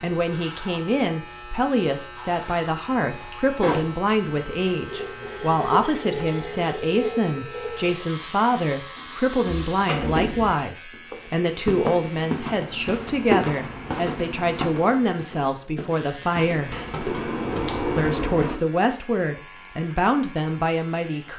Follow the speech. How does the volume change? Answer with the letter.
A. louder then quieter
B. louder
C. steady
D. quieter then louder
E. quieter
C.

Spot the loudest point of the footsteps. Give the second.
13 s.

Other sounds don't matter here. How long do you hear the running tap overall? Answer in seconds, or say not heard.
5 s.